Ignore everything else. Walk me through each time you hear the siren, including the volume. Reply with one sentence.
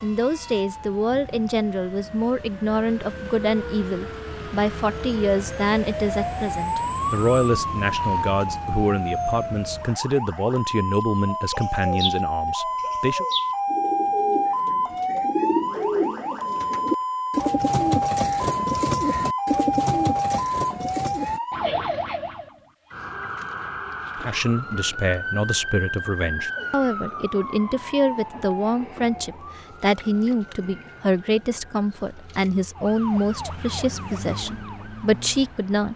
You can hear the siren from 0.0 to 35.9 s, getting louder then quieter.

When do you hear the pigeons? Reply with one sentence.
The pigeons can be heard from 11.2 to 21.4 s.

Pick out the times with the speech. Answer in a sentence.
You can hear the speech from 0.0 to 13.2 s and from 24.1 to 35.9 s.